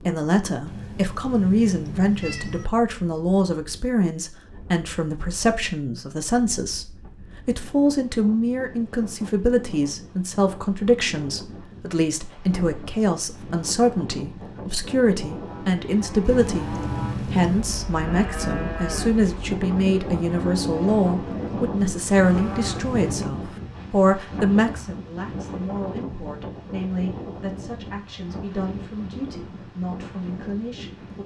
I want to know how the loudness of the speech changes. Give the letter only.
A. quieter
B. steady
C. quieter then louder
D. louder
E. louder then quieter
A.